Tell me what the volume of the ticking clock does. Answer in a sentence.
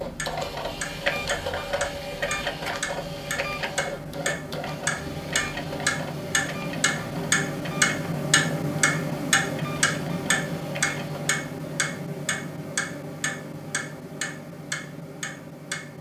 The loudness of the ticking clock goes up, then down.